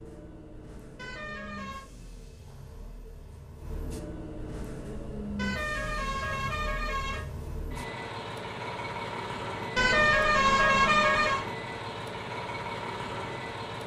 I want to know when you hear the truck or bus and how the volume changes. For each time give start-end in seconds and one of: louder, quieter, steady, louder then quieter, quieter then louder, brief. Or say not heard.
0.0-13.8 louder.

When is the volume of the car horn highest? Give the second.
11 s.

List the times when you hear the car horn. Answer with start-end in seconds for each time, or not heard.
0.9-1.9, 5.3-7.2, 9.8-11.4.